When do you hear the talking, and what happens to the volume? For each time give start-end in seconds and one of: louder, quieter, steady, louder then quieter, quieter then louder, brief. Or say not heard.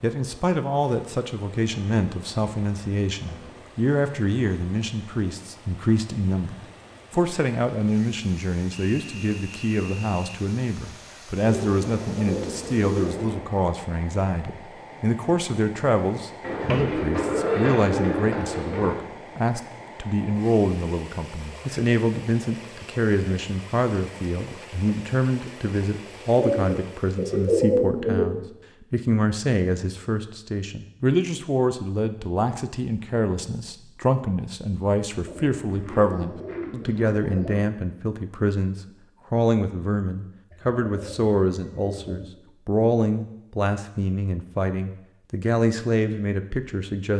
0.0-47.1 steady.